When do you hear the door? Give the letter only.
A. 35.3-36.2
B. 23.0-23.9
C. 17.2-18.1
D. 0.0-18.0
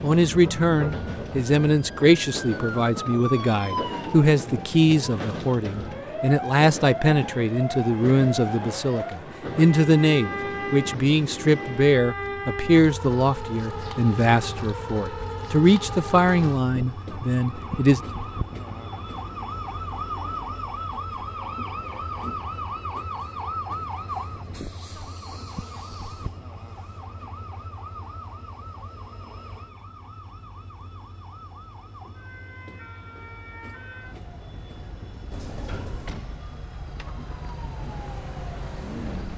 A.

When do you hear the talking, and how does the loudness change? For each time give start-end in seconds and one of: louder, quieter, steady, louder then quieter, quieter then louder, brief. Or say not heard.
0.0-18.0 steady.